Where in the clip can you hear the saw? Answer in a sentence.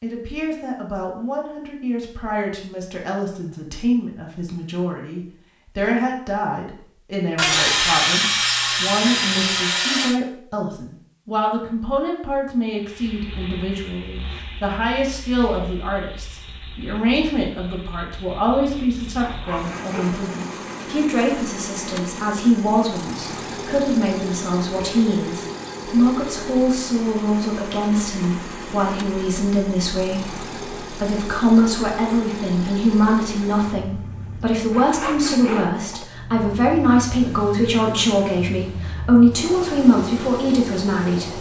You can hear the saw from 7.3 to 10.2 s, from 19.1 to 20.3 s and from 34.7 to 36.0 s.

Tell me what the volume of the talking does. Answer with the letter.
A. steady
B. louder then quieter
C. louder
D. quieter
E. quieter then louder
C.